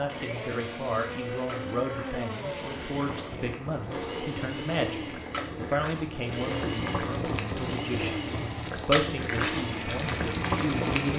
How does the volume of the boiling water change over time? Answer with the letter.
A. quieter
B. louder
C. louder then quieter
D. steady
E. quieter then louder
B.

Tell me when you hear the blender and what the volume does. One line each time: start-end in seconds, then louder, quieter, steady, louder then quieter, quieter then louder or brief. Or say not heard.
0.1-11.1 steady.